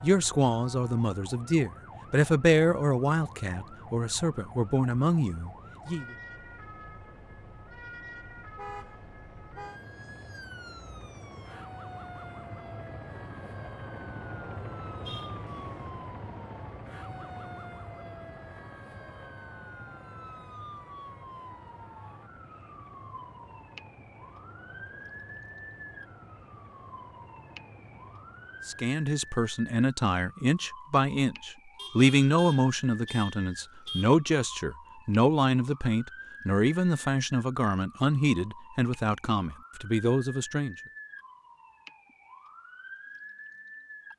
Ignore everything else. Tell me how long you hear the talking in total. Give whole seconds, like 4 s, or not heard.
18 s.